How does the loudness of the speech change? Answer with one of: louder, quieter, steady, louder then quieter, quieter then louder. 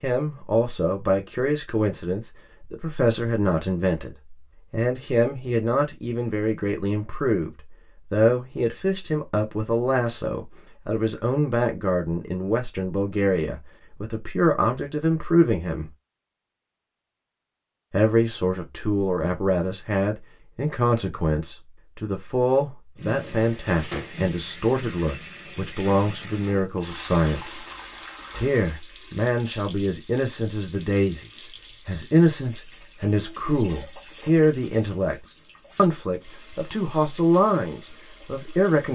steady.